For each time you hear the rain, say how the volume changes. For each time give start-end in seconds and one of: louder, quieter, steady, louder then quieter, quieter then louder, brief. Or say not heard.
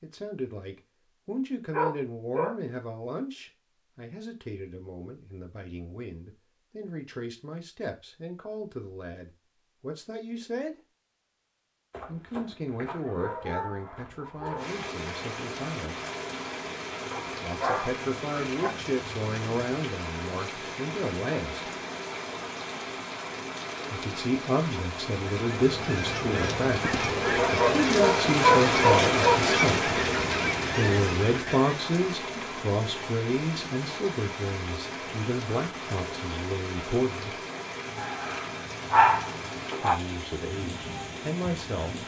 14.6-42.0 louder then quieter.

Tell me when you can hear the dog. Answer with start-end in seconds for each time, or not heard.
1.7-2.5, 11.9-14.8, 17.1-18.7, 27.4-29.4, 38.0-40.0.